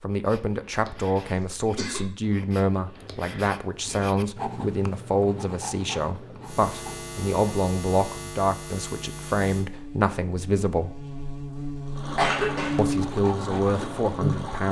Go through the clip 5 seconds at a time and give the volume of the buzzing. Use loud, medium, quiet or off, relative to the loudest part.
off, medium, loud.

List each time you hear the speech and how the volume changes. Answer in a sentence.
You can hear the speech from 0.0 to 10.9 s, at a steady volume; and briefly from 12.8 to 14.6 s.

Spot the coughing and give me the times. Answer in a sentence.
You can hear the coughing from 1.4 to 2.1 s and from 12.2 to 12.8 s.